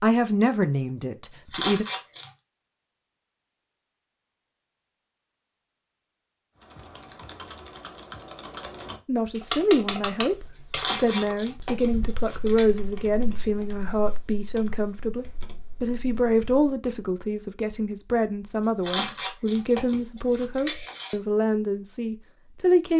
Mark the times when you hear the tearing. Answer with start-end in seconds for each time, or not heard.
1.3-2.3, 10.6-12.7, 18.6-21.1.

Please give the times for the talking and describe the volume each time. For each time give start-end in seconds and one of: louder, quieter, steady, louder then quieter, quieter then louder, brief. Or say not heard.
0.0-1.9 brief
9.1-22.9 steady.